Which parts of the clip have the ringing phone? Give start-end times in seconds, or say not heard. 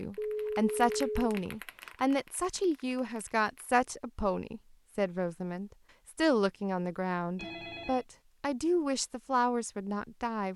0.1-1.1, 7.3-8.1.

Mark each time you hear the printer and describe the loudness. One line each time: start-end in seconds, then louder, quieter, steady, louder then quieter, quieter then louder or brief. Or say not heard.
not heard.